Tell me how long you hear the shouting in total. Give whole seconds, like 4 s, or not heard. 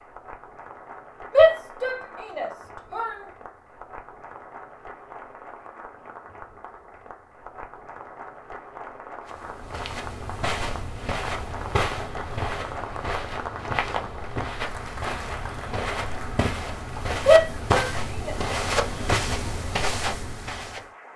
3 s.